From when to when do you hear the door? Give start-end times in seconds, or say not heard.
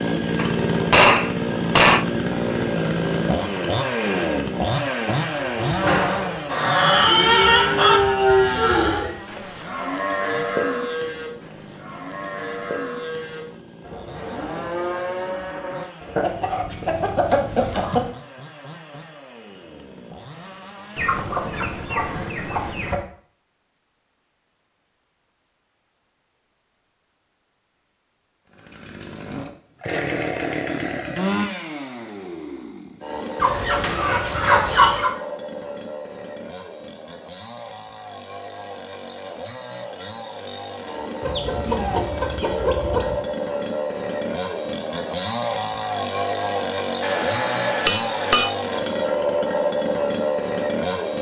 not heard.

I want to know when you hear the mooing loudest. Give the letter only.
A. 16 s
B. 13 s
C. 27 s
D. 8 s
D.